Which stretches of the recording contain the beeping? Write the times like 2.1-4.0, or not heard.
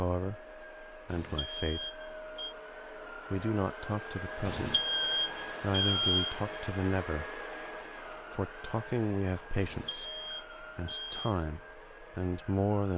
1.1-2.5, 4.5-6.3, 9.6-11.3.